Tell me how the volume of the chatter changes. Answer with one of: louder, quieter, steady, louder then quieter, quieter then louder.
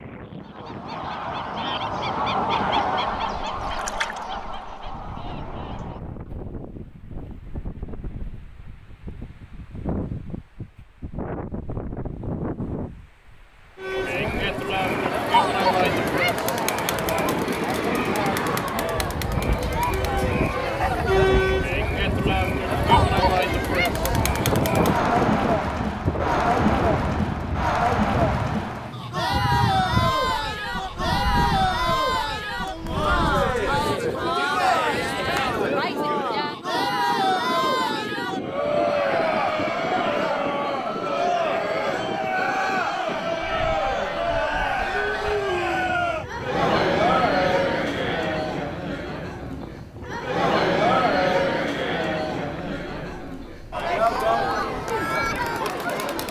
steady.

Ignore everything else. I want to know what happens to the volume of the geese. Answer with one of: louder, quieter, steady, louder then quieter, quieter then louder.
louder then quieter.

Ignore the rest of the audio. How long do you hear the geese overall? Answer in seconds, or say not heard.
6 s.